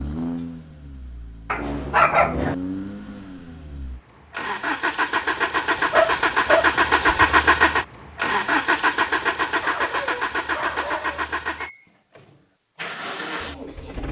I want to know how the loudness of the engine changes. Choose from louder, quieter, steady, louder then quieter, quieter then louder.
louder then quieter.